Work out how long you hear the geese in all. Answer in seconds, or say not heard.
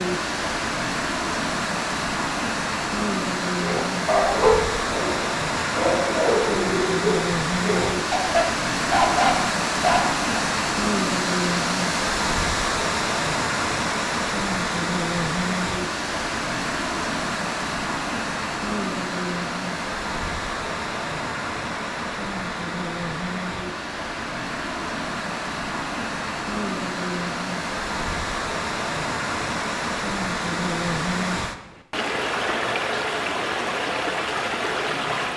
not heard.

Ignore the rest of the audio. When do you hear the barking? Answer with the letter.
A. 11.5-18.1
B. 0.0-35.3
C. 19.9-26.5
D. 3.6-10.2
D.